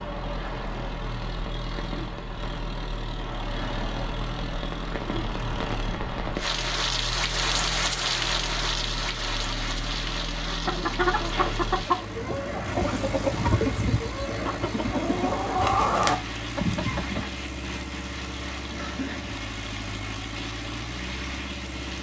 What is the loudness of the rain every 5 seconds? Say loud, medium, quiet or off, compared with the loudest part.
medium, loud, medium, medium, medium.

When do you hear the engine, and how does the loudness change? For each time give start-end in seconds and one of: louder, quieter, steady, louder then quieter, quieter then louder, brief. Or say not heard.
0.0-21.9 steady.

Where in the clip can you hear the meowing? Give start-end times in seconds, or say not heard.
not heard.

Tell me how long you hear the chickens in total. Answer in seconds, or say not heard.
7 s.